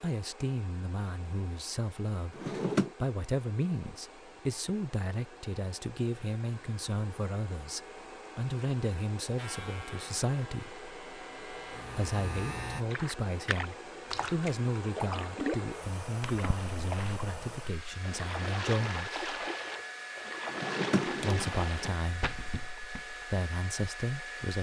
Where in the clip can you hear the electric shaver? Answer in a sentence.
The electric shaver can be heard from 9.3 to 12.8 s.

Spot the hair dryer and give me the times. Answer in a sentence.
You can hear the hair dryer from 0.0 to 24.5 s.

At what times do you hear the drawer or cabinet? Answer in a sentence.
The drawer or cabinet can be heard from 2.3 to 2.9 s and from 20.5 to 21.9 s.